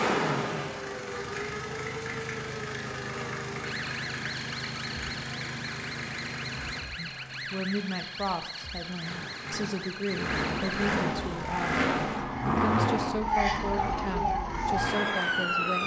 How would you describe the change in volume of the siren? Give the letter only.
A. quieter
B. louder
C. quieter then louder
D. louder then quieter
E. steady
B.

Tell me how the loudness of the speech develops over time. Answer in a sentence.
The loudness of the speech stays about the same.